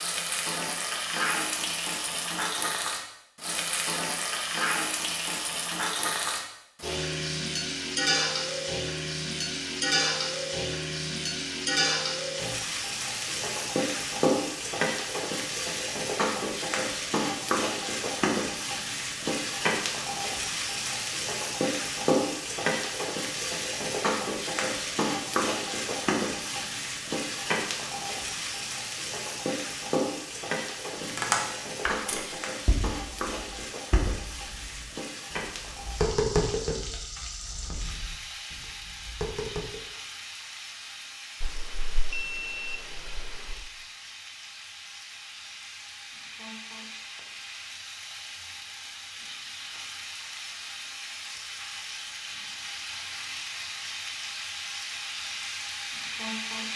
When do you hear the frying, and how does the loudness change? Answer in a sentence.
You can hear the frying from 0.0 to 56.7 s, getting quieter.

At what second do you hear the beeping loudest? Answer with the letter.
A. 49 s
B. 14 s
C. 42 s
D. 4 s
C.